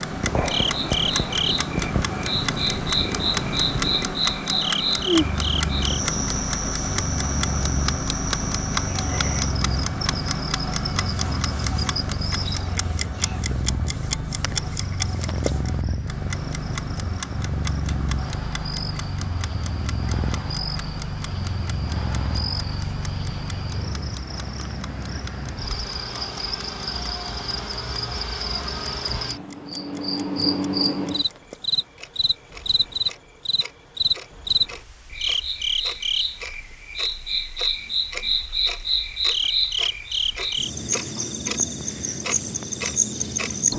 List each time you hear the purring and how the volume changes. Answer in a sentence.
The purring can be heard from 0.0 to 29.9 s, getting quieter.